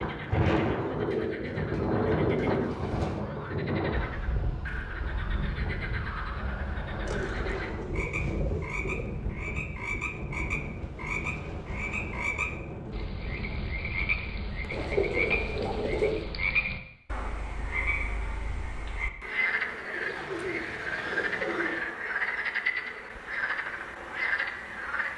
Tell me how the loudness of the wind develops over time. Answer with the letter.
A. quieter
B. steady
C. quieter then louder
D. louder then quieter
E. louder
A.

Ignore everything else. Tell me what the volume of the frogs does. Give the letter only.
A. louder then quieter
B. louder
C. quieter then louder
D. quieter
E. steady
B.